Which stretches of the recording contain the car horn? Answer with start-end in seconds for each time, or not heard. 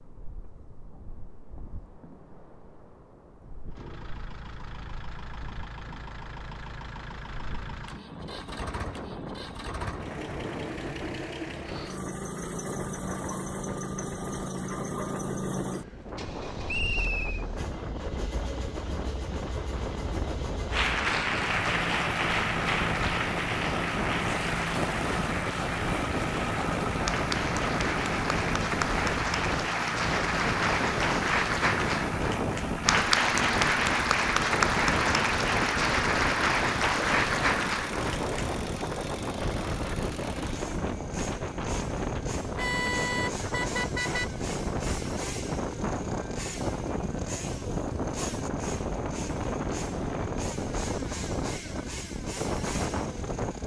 42.5-44.3.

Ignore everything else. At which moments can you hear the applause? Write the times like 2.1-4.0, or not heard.
20.7-38.6.